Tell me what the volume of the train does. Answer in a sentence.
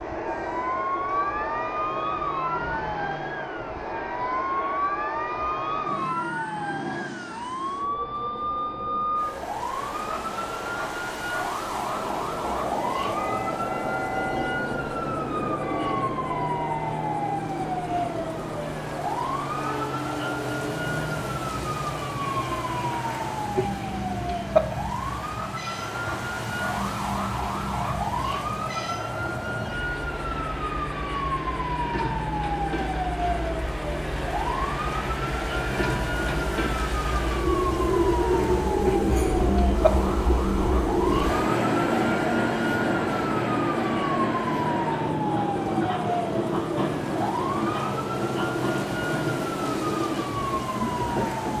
The loudness of the train goes up.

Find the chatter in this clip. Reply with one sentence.
The chatter can't be heard in this clip.